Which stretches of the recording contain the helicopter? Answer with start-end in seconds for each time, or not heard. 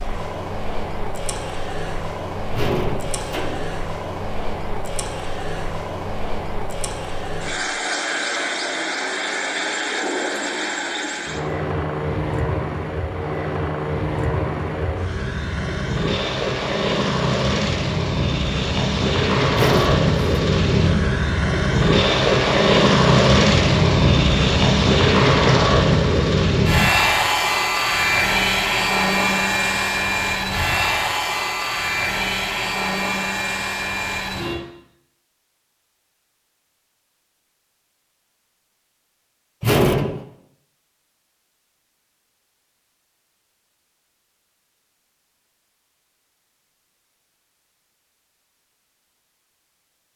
0.0-34.6.